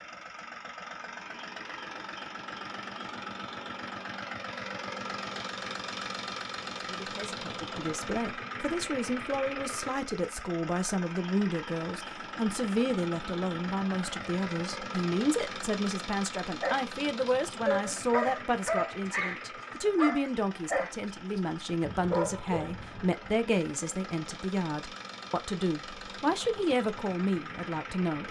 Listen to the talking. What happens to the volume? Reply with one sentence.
The loudness of the talking stays about the same.